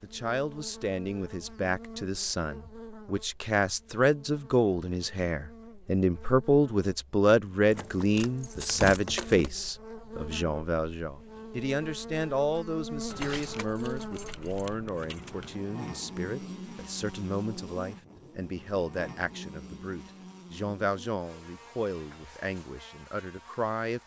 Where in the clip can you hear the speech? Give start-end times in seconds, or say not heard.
0.0-24.0.